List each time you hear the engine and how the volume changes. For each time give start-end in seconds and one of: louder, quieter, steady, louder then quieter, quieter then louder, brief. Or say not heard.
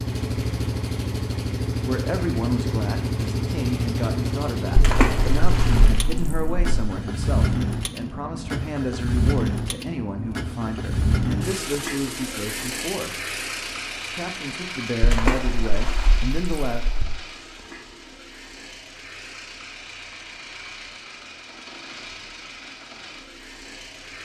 0.0-24.2 quieter.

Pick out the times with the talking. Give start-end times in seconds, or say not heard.
1.6-13.2, 14.1-17.0.